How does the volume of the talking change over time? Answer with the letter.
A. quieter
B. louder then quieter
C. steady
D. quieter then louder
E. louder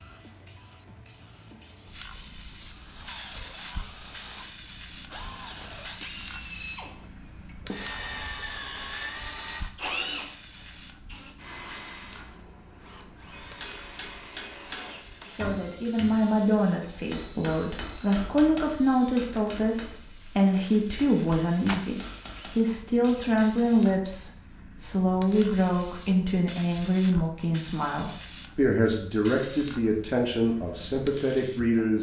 C.